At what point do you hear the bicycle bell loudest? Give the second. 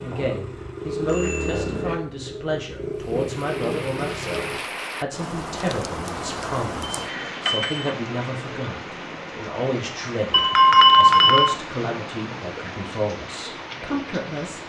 11 s.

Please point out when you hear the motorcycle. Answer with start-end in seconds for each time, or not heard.
0.0-4.6.